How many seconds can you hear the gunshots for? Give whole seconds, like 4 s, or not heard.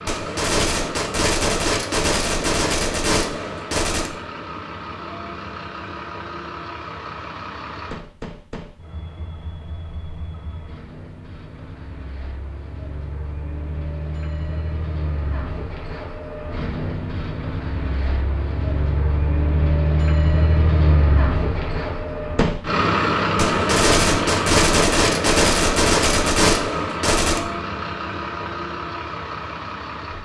8 s.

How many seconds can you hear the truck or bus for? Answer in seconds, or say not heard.
30 s.